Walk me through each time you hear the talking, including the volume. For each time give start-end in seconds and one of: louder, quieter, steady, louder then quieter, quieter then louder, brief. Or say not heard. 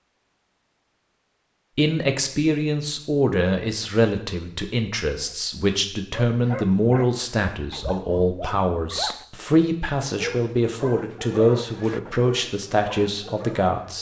1.8-13.9 steady.